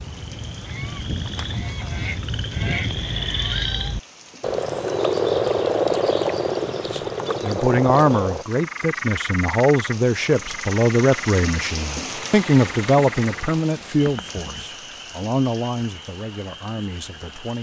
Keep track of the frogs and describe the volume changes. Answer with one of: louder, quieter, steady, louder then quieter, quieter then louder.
louder then quieter.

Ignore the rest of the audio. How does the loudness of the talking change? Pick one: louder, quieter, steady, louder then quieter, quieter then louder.
quieter.